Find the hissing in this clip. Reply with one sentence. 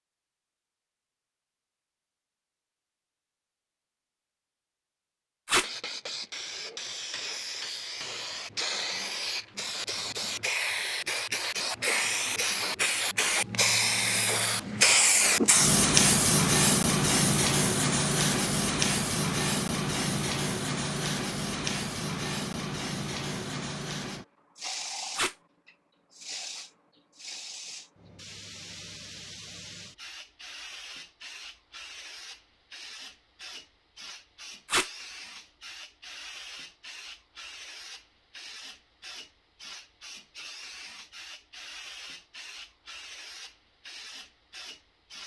The hissing can be heard from 5.6 to 45.2 s.